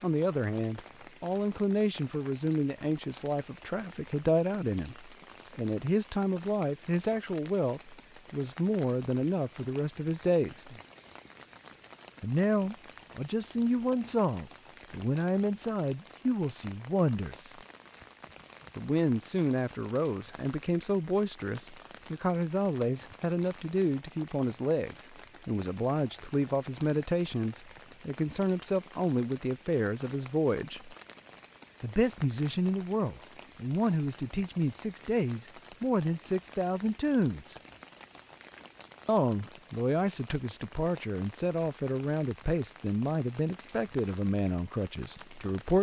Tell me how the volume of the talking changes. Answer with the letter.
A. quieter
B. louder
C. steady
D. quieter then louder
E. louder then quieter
C.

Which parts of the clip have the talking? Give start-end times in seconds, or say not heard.
0.0-10.7, 12.2-17.6, 18.8-30.9, 31.8-37.5, 39.0-45.7.